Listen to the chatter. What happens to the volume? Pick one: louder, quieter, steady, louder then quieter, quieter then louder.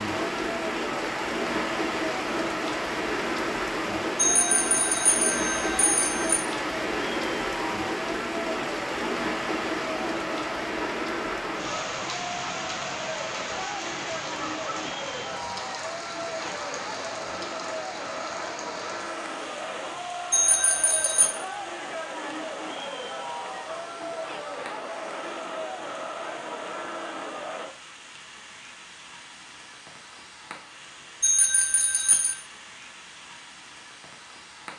steady.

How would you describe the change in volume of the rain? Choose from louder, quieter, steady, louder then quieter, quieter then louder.
quieter.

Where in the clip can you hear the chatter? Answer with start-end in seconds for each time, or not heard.
0.2-27.8.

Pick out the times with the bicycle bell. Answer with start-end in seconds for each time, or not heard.
4.2-6.4, 20.3-21.3, 31.2-32.4.